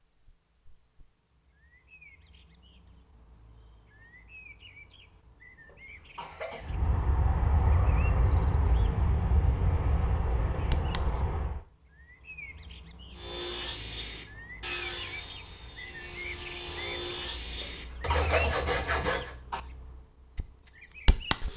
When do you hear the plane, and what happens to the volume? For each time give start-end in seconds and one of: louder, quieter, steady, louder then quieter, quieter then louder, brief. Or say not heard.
6.6-11.7 steady.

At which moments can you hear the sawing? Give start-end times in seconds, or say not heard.
13.1-19.4.